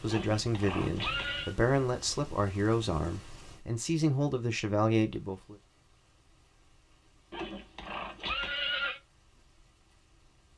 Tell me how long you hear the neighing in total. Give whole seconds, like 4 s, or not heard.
3 s.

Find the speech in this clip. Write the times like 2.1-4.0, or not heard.
0.0-5.5.